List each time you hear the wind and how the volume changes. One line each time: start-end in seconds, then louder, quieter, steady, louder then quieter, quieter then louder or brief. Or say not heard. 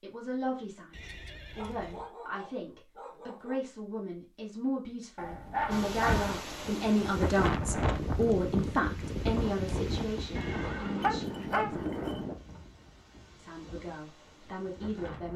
5.7-15.3 quieter.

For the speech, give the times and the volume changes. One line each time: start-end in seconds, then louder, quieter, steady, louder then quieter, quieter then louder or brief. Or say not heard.
0.0-11.8 louder then quieter
13.3-15.3 brief.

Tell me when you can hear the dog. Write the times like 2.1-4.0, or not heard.
1.6-3.6, 5.2-6.5, 11.0-12.2.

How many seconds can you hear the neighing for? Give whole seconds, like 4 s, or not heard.
3 s.